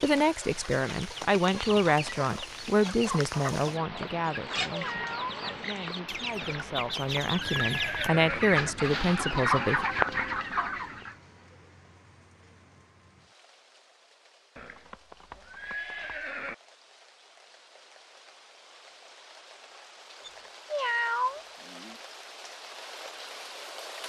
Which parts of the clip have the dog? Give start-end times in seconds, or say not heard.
not heard.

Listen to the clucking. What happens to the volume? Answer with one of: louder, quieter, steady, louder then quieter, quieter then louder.
louder.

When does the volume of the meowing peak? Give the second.
21 s.